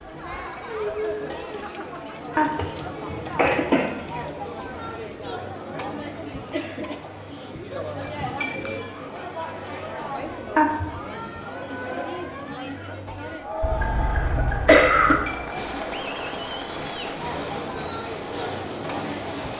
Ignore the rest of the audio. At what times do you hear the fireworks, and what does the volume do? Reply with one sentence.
You can hear the fireworks from 15.5 to 19.5 s, at a steady volume.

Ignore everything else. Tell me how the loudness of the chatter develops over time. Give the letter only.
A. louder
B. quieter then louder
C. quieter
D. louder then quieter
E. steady
E.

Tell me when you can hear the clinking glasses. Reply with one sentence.
The clinking glasses can be heard from 1.2 to 3.6 s, from 8.2 to 8.9 s and from 15.1 to 15.8 s.